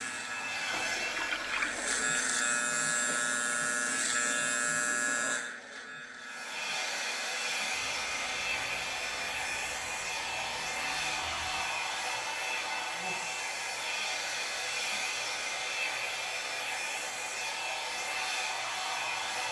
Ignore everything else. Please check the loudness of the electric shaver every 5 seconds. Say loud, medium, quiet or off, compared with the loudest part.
loud, medium, quiet, quiet.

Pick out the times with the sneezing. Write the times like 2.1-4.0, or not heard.
not heard.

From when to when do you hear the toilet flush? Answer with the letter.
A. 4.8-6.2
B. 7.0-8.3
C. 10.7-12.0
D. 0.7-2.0
D.